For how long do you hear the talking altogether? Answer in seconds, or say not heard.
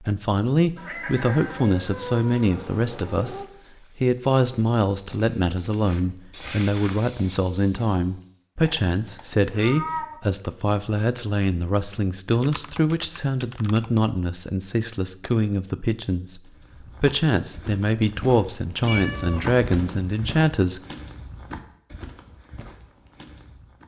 20 s.